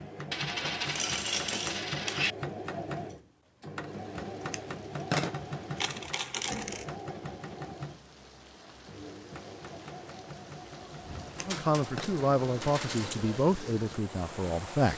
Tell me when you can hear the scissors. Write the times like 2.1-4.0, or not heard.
4.4-5.3, 11.2-12.1.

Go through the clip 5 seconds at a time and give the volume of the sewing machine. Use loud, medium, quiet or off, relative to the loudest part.
loud, loud, medium.